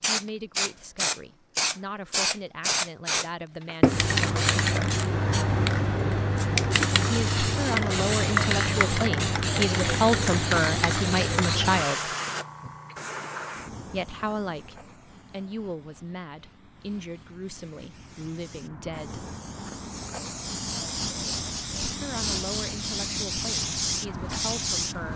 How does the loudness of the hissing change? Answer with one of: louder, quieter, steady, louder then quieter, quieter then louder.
quieter then louder.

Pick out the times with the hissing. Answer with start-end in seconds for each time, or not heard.
0.0-25.1.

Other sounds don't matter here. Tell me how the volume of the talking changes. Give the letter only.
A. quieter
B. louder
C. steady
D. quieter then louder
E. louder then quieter
E.